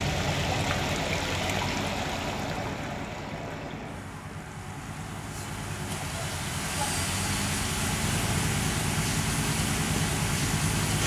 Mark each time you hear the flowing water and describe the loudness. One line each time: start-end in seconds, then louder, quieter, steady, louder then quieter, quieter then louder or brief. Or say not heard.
0.0-11.0 quieter then louder.